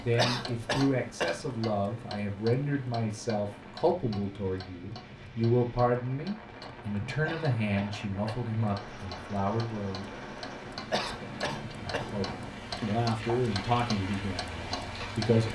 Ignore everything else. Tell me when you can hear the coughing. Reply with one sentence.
The coughing can be heard from 0.1 to 1.4 s, from 7.2 to 8.4 s and from 10.9 to 12.1 s.